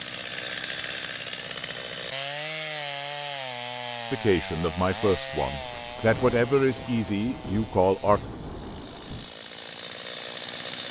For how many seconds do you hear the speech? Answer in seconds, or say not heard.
4 s.